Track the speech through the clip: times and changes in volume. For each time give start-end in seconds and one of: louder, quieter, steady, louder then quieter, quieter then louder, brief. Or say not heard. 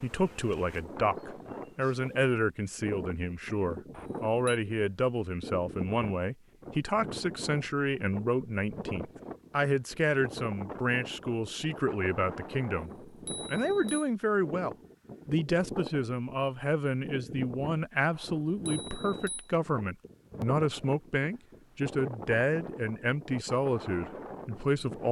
0.0-25.0 steady.